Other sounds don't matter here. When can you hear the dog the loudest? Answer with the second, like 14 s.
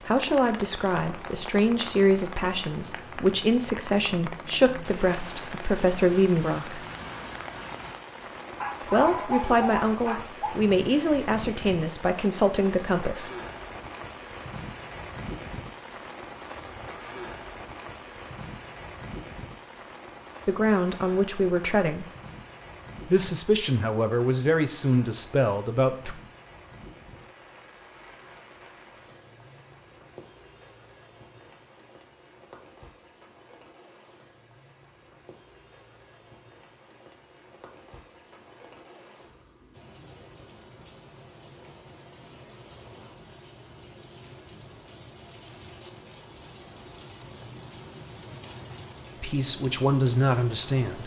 9 s.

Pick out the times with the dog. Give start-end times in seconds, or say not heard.
8.6-10.6.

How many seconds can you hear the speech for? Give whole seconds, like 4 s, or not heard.
18 s.